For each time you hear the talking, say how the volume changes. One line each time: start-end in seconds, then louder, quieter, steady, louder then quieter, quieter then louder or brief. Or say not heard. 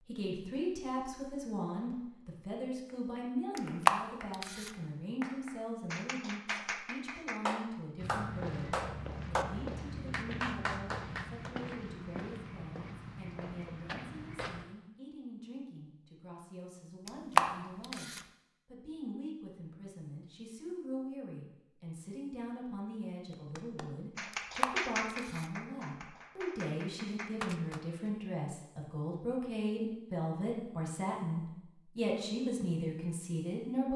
0.0-33.9 quieter then louder.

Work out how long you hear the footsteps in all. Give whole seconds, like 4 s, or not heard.
7 s.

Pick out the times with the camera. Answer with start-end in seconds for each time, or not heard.
3.5-4.7, 17.1-18.2, 24.3-25.4.